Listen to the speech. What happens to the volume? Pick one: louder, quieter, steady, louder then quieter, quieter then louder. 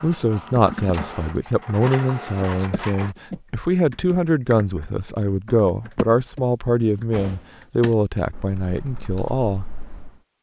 steady.